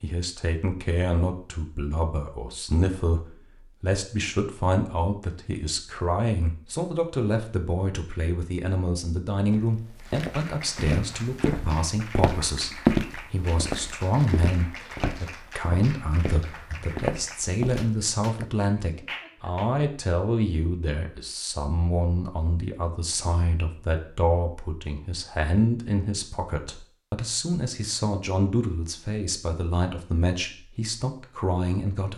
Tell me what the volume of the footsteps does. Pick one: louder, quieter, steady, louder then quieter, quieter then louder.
louder then quieter.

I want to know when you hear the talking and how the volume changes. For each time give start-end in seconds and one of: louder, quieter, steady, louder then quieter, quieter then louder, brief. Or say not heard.
0.0-32.1 steady.